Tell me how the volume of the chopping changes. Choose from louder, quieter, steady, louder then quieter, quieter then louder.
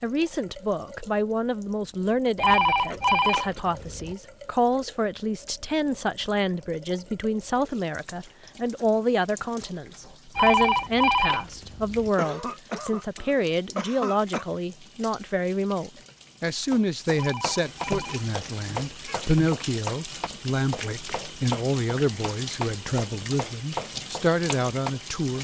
steady.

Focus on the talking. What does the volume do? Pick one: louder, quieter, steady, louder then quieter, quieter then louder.
steady.